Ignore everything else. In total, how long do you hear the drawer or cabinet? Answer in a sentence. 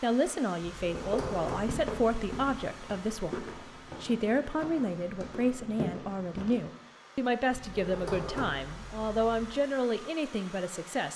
The drawer or cabinet can be heard for 4 seconds in total.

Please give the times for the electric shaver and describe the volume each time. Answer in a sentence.
You can't hear the electric shaver here.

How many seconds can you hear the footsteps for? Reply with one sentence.
The footsteps can be heard for 6 seconds in total.